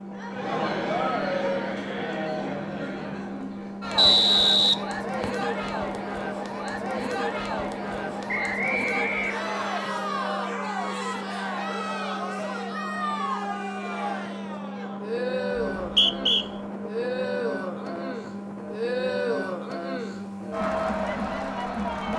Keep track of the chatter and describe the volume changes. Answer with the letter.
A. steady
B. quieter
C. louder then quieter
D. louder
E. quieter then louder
A.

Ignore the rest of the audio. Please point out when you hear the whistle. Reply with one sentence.
The whistle can be heard from 4.0 to 5.5 s, from 8.4 to 9.8 s and from 15.8 to 16.4 s.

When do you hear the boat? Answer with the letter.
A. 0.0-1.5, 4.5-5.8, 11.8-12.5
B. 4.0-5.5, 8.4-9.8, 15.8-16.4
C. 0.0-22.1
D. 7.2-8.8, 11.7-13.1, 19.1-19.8
C.